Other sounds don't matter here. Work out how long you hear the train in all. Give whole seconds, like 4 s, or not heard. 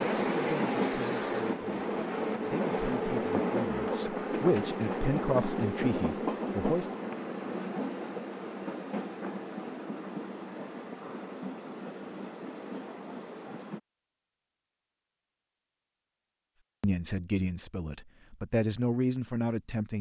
14 s.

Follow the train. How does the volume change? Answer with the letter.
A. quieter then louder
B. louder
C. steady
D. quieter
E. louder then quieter
D.